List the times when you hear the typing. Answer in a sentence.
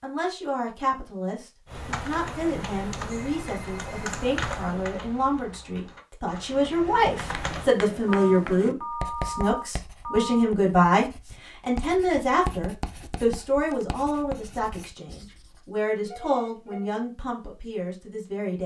You can hear the typing from 1.6 to 7.7 s.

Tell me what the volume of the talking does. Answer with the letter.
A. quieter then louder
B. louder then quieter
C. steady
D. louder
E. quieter
B.